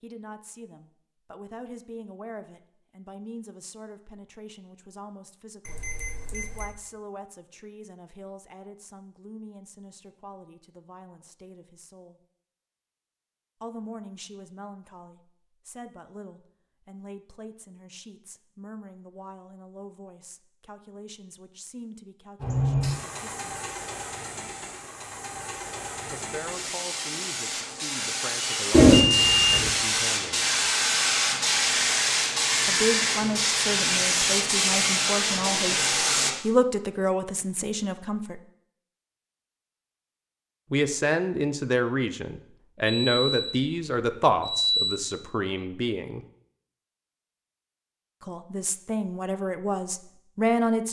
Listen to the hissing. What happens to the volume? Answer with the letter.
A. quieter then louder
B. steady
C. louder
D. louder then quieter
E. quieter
C.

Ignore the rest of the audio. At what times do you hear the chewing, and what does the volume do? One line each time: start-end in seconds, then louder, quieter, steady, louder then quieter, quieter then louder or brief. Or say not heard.
not heard.